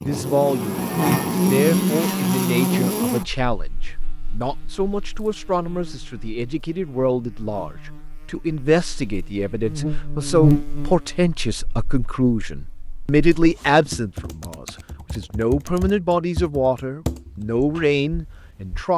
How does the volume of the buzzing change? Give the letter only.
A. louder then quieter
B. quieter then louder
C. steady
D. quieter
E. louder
B.